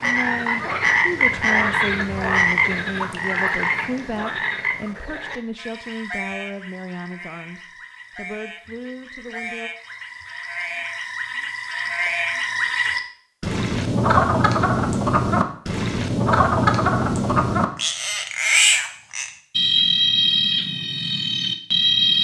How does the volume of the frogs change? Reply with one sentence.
The volume of the frogs goes down, then up.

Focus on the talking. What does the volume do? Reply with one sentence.
The volume of the talking goes down.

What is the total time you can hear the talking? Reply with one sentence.
The talking can be heard for 10 seconds in total.